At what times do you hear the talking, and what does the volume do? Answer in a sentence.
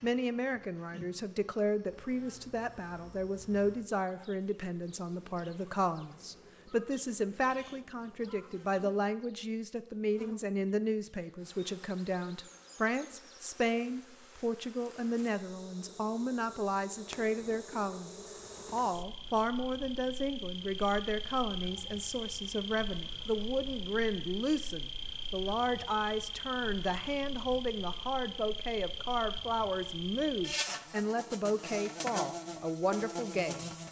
You can hear the talking from 0.0 to 33.7 s, at a steady volume.